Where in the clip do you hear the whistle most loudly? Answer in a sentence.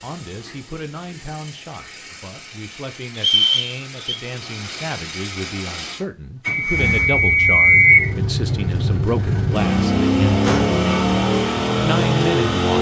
The volume of the whistle peaks at 8 seconds.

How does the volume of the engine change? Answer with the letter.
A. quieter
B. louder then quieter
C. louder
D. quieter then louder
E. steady
C.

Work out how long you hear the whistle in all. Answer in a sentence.
You can hear the whistle for 3 seconds altogether.